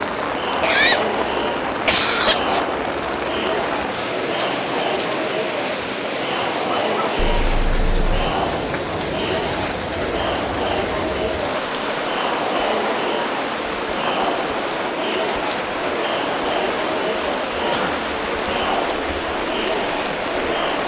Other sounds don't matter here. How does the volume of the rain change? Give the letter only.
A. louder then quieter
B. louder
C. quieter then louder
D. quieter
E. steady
E.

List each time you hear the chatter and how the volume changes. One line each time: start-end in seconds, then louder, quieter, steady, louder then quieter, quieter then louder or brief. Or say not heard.
0.0-20.8 steady.